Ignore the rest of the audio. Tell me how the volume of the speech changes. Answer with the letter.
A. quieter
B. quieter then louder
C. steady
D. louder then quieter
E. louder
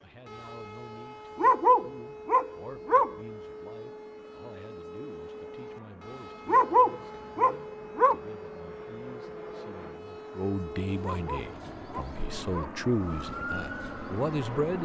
E.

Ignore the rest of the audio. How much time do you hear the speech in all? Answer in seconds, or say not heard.
15 s.